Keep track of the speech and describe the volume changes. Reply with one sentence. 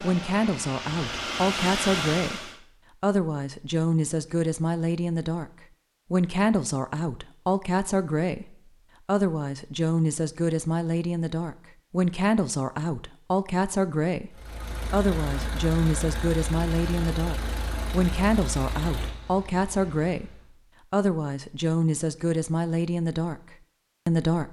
The loudness of the speech stays about the same.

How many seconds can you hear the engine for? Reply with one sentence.
You can hear the engine for 9 seconds altogether.